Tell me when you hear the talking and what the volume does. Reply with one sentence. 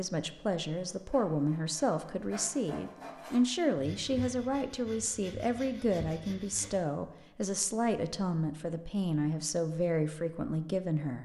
You can hear the talking from 0.0 to 11.1 s, at a steady volume.